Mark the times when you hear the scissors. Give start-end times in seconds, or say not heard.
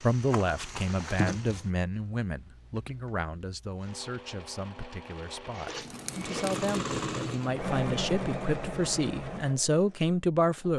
5.5-6.5.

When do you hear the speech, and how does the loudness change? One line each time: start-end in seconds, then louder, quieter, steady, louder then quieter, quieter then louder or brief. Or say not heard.
0.0-10.7 quieter then louder.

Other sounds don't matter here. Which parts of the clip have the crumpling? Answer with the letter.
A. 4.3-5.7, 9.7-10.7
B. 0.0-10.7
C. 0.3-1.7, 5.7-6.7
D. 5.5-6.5
C.